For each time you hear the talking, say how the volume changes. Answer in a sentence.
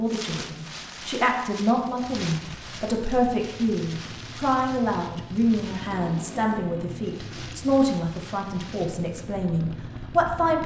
You can hear the talking from 0.0 to 10.6 s, at a steady volume.